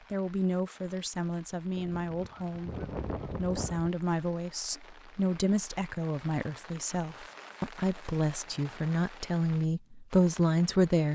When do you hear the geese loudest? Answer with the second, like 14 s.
3 s.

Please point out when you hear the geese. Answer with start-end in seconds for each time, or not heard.
1.8-3.9.